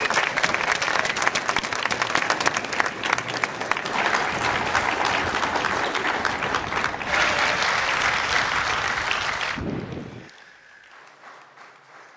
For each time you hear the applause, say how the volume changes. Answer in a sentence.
You can hear the applause from 0.0 to 12.1 s, getting quieter.